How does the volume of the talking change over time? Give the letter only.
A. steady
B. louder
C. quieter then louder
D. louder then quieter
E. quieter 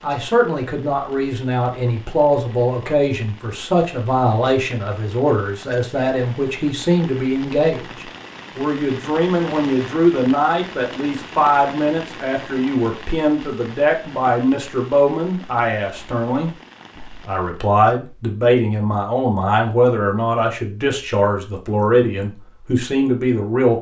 A.